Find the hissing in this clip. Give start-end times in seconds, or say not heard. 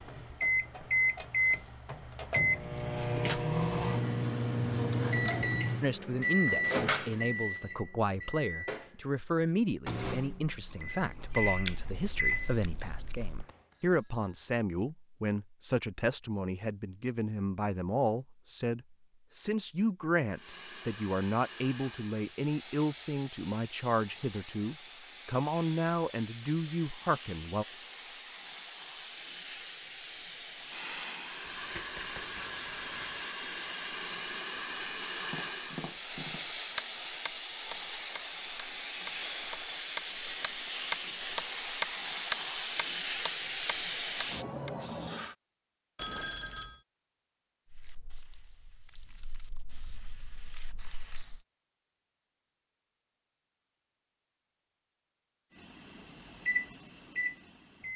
20.3-45.4, 47.6-51.4.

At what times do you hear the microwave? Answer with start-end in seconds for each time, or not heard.
0.0-13.4, 55.5-57.9.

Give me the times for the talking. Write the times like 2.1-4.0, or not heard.
5.8-27.6.